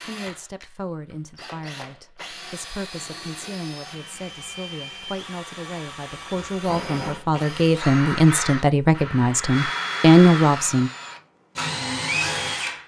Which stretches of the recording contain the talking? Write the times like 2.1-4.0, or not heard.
0.0-10.9.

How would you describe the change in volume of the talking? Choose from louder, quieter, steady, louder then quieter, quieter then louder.
louder.